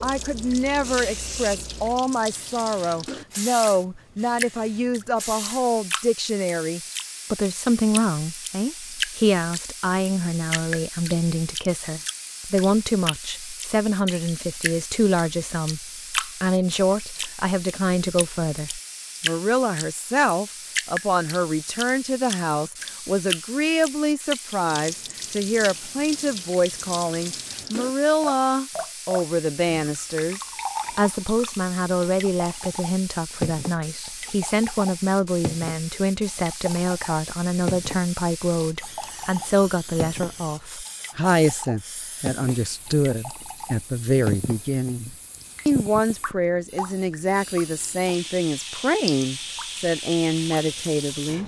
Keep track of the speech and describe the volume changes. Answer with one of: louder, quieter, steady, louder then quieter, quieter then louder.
steady.